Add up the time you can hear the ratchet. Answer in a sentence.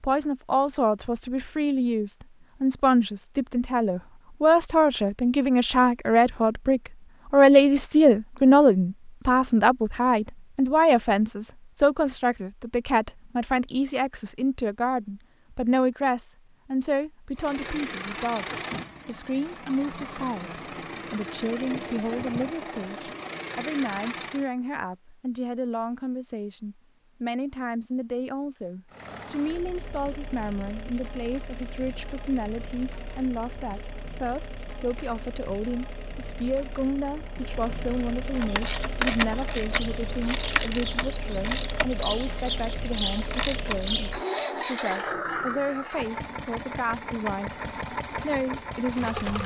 You can hear the ratchet for 6 seconds altogether.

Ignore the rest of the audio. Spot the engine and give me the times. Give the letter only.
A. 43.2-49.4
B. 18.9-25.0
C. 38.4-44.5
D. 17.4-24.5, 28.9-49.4
D.